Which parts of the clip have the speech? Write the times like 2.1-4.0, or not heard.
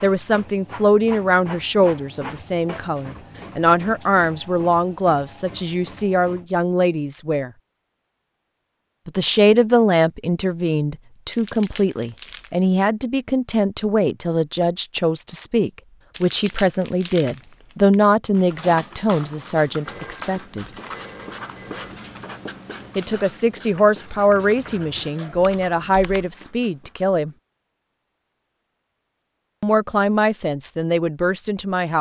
0.0-7.5, 9.1-20.6, 22.9-27.3, 29.6-31.9.